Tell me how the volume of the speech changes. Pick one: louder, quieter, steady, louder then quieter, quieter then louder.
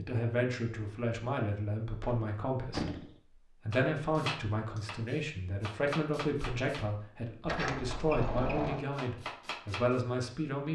steady.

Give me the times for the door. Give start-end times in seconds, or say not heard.
2.0-3.1, 7.5-8.8.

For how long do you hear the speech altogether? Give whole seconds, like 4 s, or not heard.
11 s.